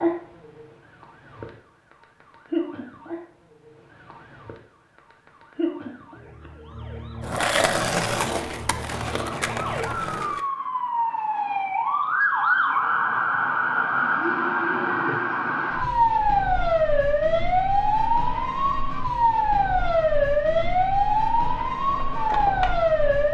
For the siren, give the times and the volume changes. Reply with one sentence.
The siren can be heard from 0.0 to 23.2 s, getting louder.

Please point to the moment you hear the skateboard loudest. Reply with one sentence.
The loudest moment of the skateboard is at 8 seconds.